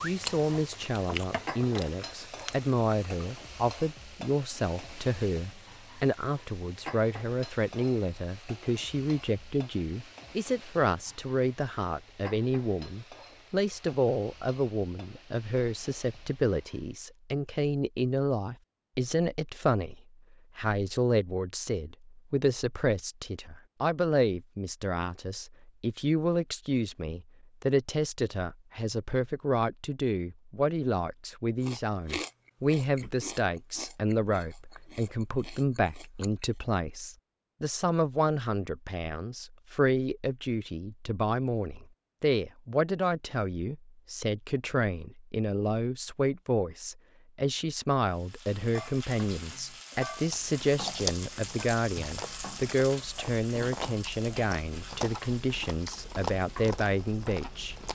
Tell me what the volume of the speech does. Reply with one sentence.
The volume of the speech stays about the same.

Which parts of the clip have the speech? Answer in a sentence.
You can hear the speech from 0.0 to 57.8 s.